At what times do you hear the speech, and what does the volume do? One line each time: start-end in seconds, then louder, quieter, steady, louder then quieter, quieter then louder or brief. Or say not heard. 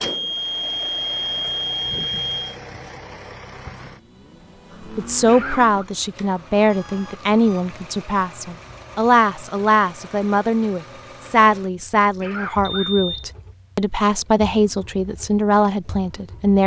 5.0-16.6 steady.